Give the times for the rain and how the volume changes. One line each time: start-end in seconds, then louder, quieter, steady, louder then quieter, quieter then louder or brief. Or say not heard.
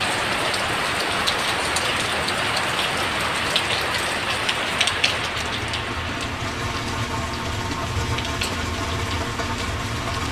0.0-10.2 quieter.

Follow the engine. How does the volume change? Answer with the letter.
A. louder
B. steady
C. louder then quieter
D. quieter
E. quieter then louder
A.